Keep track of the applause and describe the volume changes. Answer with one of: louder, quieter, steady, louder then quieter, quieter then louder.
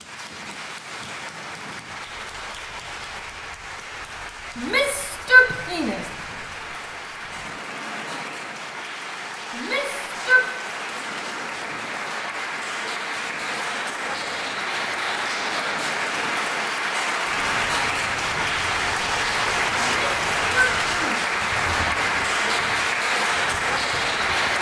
louder.